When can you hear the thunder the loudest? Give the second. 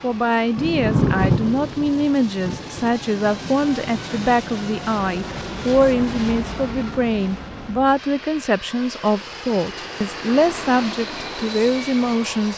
1 s.